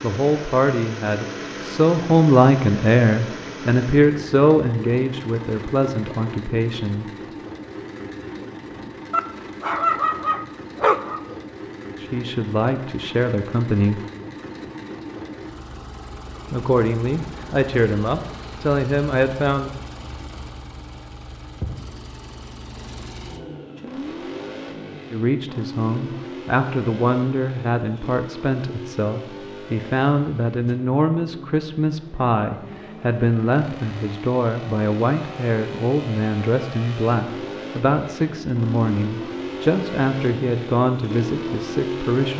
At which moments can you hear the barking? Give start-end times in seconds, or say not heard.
9.1-11.4.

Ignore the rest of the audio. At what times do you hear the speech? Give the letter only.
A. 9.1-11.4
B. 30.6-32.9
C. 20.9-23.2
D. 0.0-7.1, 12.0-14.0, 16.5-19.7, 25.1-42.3
D.